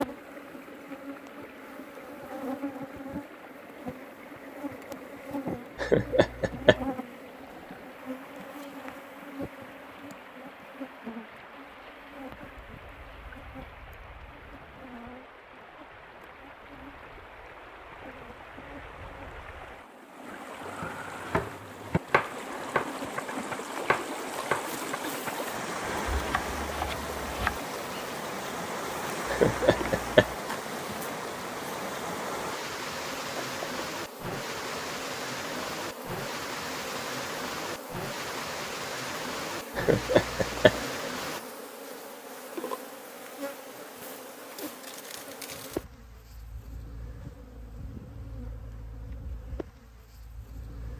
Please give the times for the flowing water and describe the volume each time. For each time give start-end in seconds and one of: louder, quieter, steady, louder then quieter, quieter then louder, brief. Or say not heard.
0.0-41.4 louder.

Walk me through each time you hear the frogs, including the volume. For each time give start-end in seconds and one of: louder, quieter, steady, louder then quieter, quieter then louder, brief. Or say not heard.
not heard.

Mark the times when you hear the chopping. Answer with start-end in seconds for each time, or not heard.
20.8-27.6.